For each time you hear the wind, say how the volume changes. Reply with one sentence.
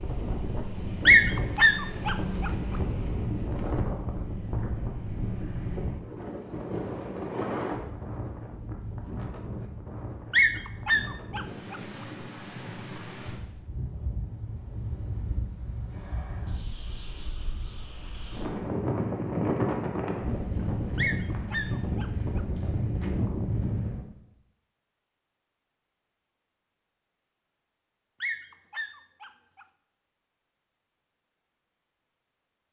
The wind can be heard from 0.0 to 24.1 s, getting quieter then louder.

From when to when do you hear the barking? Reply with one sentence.
You can hear the barking from 1.1 to 2.5 s, from 10.3 to 11.8 s, from 20.9 to 22.4 s and from 28.2 to 29.6 s.